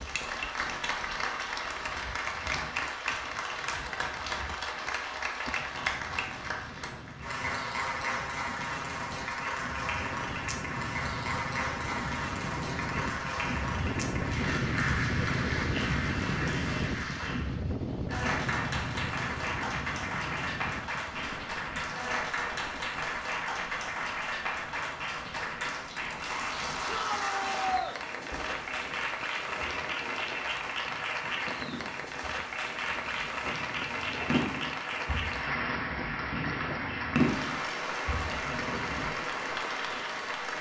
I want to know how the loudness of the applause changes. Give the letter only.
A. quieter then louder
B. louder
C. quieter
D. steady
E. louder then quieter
D.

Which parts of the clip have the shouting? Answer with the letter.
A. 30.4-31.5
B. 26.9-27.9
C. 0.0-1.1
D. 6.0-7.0
B.